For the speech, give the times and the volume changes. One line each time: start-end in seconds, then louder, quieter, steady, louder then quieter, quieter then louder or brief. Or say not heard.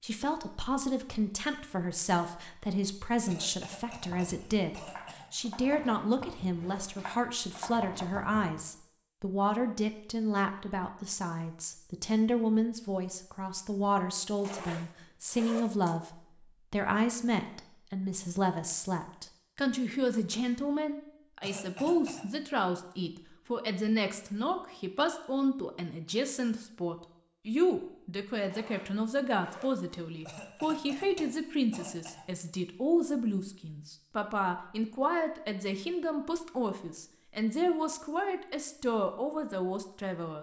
0.0-40.3 steady.